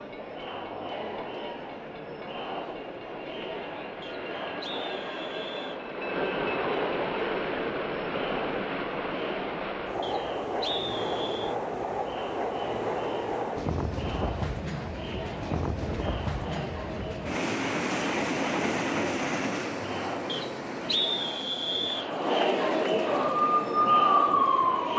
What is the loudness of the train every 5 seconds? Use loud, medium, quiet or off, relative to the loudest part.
quiet, loud, loud, loud, medium.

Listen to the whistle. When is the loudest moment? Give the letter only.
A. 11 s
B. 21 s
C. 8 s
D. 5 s
B.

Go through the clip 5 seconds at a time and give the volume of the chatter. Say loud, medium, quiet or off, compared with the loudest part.
medium, medium, medium, medium, loud.